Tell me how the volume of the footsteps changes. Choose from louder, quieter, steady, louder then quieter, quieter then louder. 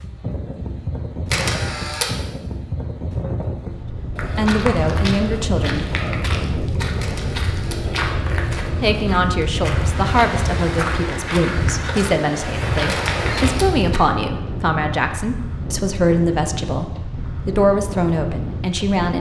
steady.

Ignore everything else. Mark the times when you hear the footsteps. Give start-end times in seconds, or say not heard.
4.2-14.0.